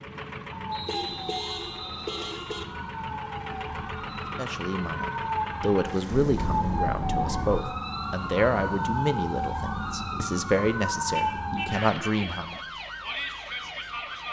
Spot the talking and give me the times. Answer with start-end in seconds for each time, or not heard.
4.3-12.6.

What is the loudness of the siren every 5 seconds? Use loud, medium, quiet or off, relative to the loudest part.
medium, loud, loud.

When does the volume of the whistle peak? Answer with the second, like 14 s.
1 s.